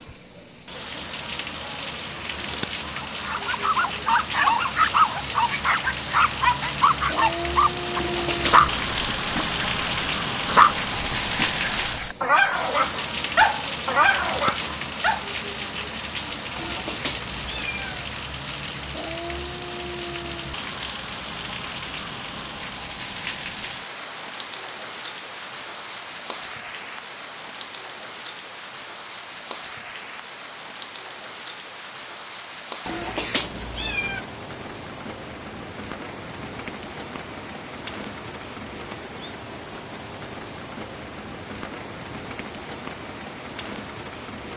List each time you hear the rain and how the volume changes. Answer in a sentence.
The rain can be heard from 0.0 to 44.5 s, getting quieter.